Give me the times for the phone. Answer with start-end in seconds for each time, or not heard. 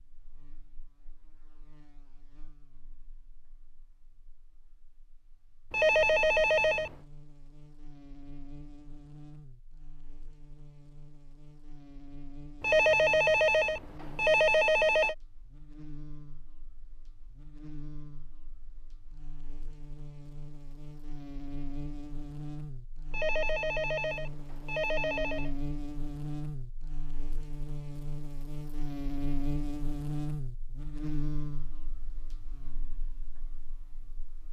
5.7-7.0, 12.6-15.2, 23.1-25.5.